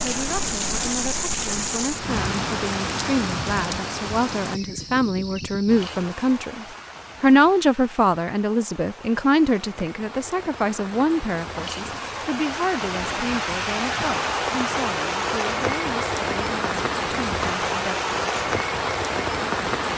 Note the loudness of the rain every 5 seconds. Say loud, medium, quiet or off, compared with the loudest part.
loud, quiet, loud, loud.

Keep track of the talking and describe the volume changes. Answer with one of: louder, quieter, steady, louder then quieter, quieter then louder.
louder then quieter.